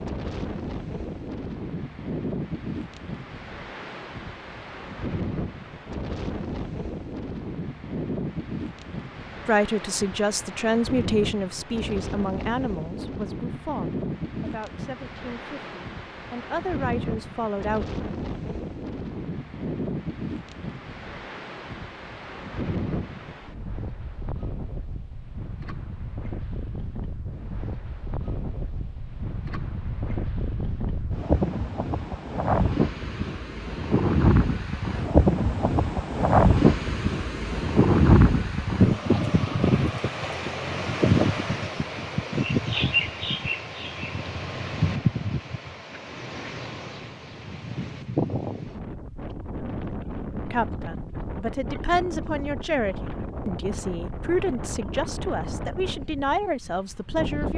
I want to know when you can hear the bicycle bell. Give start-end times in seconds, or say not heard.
not heard.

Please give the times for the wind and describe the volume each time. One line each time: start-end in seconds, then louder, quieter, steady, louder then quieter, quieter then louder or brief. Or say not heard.
0.0-57.5 louder then quieter.